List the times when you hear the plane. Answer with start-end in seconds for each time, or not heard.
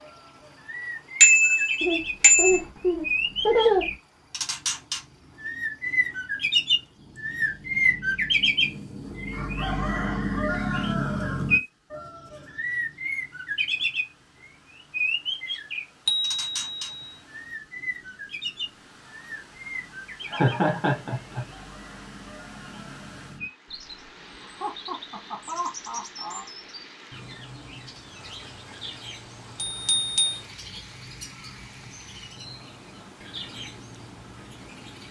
not heard.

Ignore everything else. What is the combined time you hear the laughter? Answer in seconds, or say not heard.
5 s.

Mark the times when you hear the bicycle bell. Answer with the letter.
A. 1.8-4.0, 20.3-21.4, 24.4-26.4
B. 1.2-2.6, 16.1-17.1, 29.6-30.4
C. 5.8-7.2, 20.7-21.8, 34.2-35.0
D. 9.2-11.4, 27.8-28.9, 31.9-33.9
B.